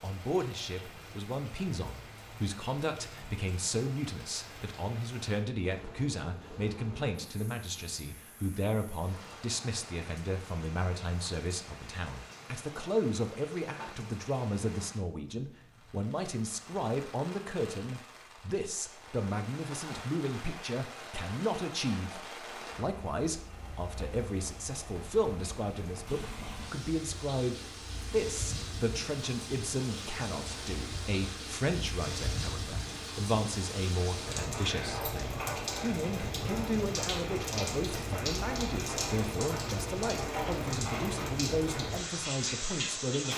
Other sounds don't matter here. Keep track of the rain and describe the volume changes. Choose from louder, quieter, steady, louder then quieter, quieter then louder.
louder.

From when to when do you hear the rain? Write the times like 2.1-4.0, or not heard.
0.0-43.3.